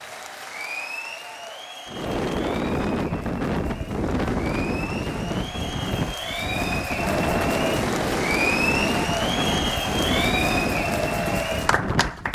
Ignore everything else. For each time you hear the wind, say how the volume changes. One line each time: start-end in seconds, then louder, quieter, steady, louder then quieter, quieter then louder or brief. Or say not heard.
1.9-12.3 steady.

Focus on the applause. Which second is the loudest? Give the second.
9 s.